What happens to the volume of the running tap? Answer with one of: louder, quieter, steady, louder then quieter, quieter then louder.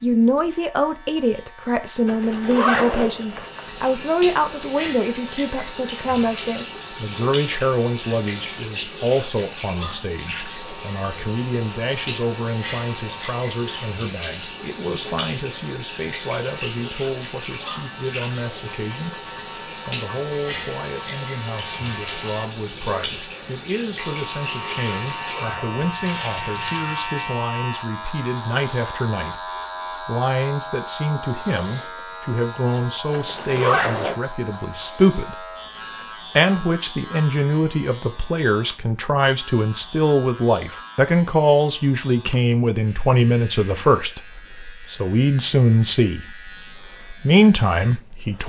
steady.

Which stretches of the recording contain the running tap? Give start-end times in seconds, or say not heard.
3.2-27.3.